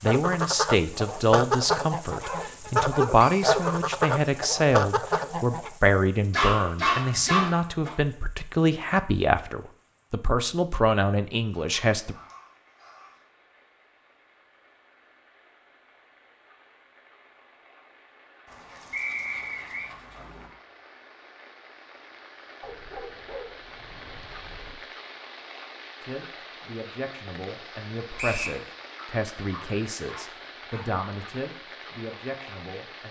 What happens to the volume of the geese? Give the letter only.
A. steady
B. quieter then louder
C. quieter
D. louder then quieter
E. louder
A.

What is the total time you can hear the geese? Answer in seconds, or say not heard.
6 s.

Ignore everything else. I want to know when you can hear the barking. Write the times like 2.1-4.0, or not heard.
2.2-3.9, 6.3-8.0, 11.5-13.2, 18.4-20.5, 22.6-24.8, 28.9-30.9.